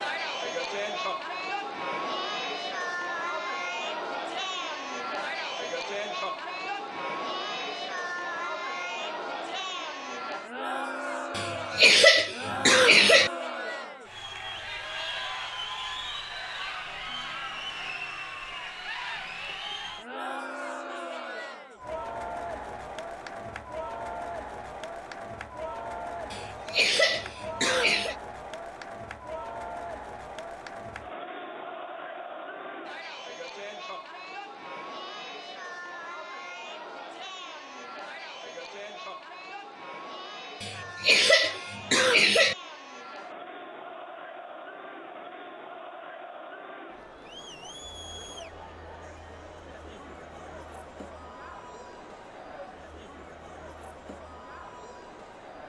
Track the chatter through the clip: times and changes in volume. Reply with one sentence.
The chatter can be heard from 0.0 to 55.6 s, getting quieter.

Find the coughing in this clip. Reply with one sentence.
You can hear the coughing from 11.3 to 13.3 s, from 26.3 to 28.1 s and from 40.6 to 42.5 s.